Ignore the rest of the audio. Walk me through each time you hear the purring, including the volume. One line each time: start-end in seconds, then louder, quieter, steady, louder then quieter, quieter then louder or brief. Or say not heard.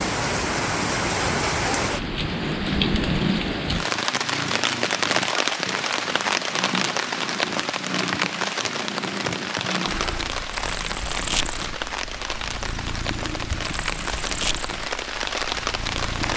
0.0-16.3 steady.